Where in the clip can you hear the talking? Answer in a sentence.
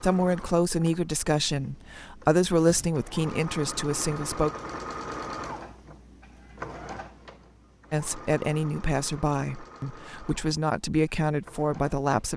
You can hear the talking from 0.0 to 4.5 s and from 7.9 to 12.3 s.